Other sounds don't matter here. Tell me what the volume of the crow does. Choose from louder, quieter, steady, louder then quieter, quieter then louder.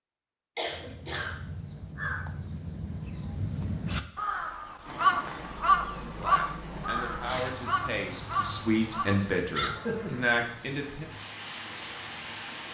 louder then quieter.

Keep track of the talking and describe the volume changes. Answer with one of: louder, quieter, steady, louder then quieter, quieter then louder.
louder.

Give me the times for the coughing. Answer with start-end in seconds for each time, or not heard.
0.6-1.3, 9.6-10.4.